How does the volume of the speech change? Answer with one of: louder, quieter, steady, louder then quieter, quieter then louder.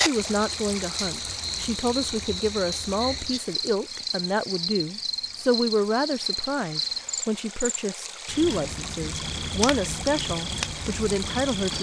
steady.